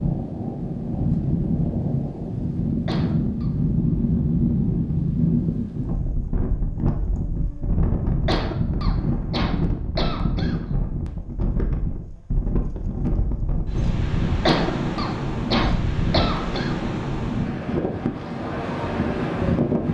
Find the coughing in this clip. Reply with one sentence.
The coughing can be heard from 2.9 to 3.5 s, from 8.2 to 10.6 s and from 14.4 to 16.8 s.